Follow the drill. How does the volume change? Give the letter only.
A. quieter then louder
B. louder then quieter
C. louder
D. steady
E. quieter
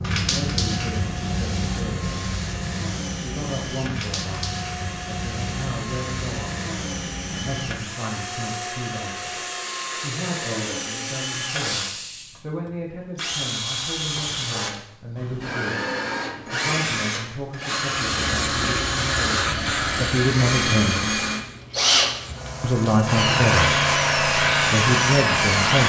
C.